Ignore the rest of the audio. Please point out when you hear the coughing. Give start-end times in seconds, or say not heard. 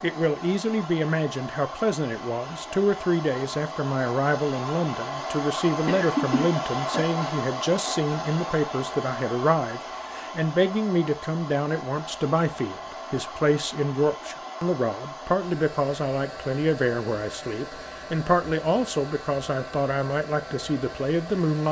5.8-7.0.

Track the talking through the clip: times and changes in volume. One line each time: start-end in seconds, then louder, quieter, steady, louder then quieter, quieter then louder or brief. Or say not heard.
0.0-21.6 steady.